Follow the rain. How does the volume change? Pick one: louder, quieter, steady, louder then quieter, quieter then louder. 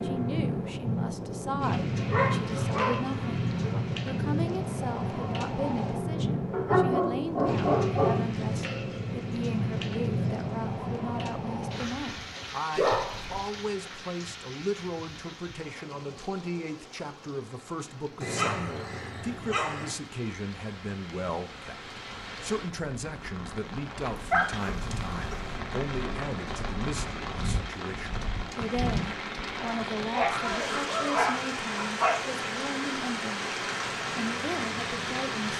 quieter then louder.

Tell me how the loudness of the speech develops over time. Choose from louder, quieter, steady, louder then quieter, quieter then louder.
steady.